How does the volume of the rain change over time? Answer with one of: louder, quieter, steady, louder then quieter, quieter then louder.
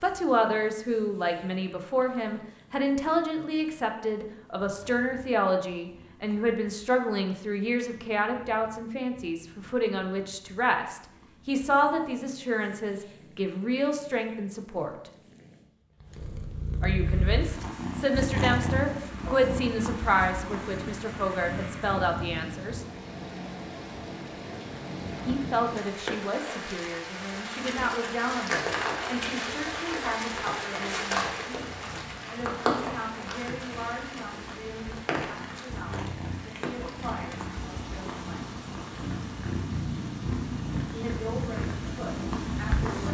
louder then quieter.